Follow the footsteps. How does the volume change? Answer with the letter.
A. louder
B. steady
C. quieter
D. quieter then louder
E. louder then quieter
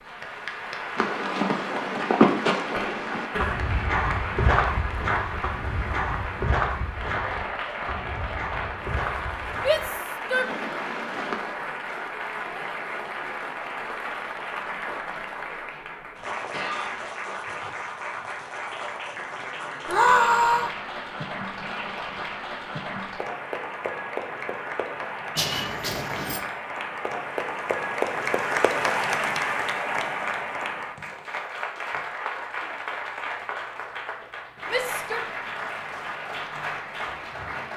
C.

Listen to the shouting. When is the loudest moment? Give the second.
20 s.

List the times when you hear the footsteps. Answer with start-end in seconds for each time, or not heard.
0.9-11.6.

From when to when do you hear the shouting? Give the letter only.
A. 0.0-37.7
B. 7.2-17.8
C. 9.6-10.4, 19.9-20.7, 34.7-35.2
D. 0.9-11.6
C.